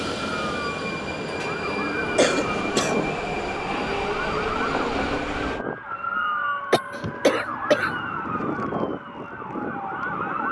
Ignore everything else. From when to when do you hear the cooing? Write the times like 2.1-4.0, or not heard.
not heard.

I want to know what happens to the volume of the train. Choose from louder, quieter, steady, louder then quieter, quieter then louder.
steady.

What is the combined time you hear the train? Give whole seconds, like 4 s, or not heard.
6 s.